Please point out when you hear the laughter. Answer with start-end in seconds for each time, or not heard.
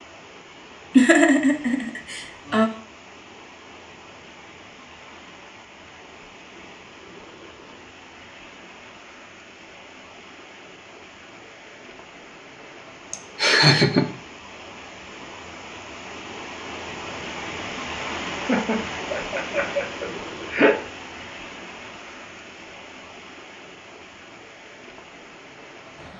0.9-2.7, 13.1-14.1, 18.4-20.8.